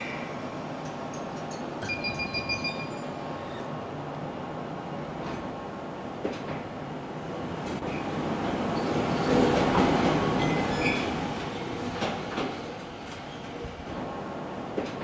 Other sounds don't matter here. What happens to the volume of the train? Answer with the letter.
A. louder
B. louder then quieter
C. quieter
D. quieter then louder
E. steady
B.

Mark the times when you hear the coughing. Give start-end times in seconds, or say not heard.
not heard.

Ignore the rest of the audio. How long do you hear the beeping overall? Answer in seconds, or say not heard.
2 s.